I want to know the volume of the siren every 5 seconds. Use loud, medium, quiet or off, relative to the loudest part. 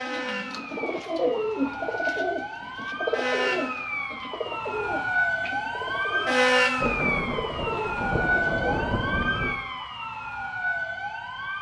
medium, loud, medium.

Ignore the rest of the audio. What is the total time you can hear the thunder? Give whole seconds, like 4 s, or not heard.
3 s.